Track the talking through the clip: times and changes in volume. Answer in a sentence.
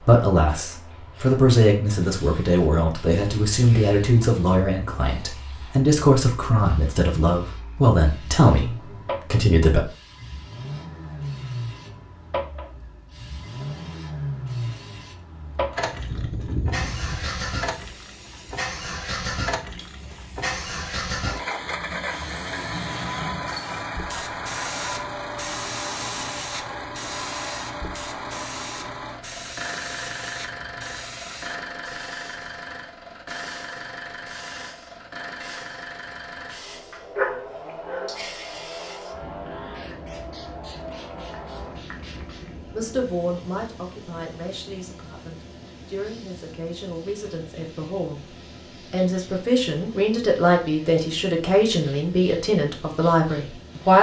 You can hear the talking from 0.0 to 9.8 s, at a steady volume; and from 42.7 to 53.9 s, getting louder.